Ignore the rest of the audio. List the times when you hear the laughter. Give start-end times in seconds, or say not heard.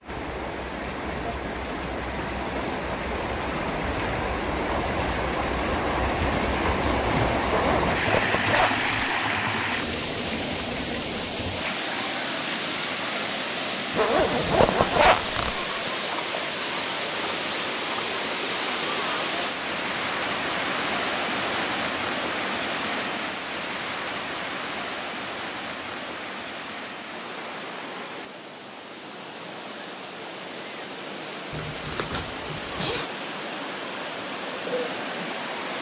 not heard.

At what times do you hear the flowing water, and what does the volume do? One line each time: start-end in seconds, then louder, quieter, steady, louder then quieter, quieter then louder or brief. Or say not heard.
0.0-35.7 quieter.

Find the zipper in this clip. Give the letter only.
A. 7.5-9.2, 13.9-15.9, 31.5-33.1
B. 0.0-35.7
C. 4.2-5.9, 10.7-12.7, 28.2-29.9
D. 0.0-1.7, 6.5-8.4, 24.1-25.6
A.